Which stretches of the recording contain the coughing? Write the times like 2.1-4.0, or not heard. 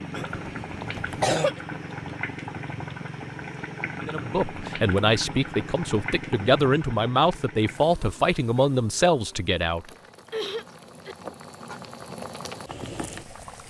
0.1-1.6, 9.9-11.2.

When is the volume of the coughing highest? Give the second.
1 s.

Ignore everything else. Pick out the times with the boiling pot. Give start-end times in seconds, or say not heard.
0.0-13.6.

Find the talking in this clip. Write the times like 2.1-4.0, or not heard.
4.0-9.8.